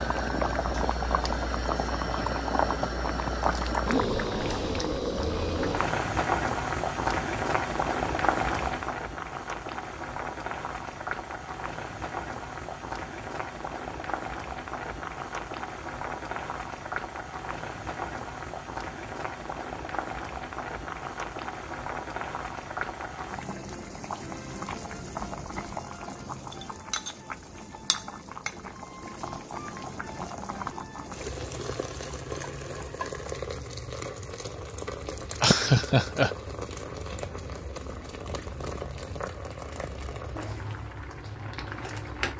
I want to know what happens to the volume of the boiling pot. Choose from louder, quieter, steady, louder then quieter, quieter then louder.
quieter.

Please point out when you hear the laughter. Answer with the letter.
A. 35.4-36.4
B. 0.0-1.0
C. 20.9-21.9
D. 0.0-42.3
A.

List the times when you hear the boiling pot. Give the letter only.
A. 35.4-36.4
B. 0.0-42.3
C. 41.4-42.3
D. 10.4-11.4
B.